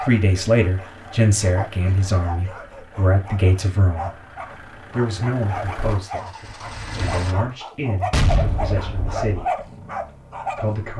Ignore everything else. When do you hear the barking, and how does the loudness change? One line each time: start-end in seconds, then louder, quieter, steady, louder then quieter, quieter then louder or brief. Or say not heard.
0.0-10.8 louder.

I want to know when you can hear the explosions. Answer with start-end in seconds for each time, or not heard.
8.1-9.3.